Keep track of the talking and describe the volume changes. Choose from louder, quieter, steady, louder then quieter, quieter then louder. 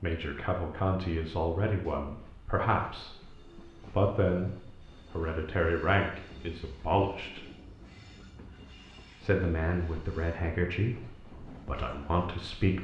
steady.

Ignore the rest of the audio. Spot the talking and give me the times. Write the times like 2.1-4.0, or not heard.
0.0-7.5, 9.2-12.7.